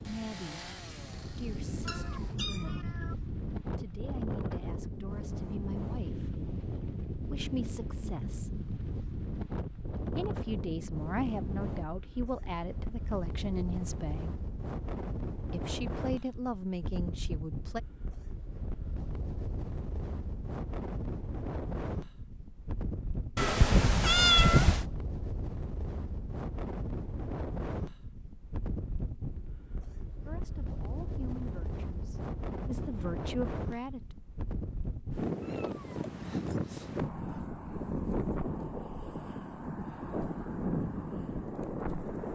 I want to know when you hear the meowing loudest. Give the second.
24 s.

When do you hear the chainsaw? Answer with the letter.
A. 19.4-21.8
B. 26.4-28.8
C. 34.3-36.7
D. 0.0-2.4
D.